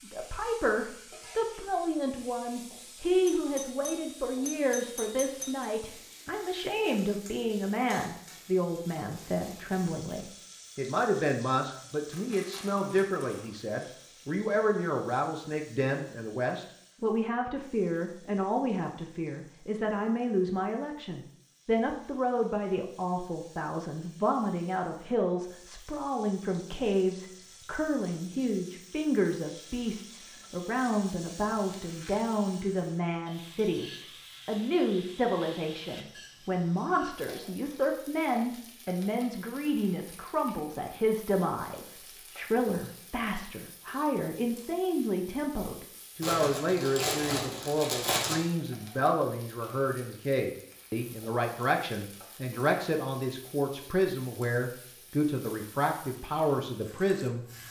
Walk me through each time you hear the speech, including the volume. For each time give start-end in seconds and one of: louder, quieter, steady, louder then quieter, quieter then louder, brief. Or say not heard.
0.0-57.5 steady.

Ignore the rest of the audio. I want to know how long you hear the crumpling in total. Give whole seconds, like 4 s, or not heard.
5 s.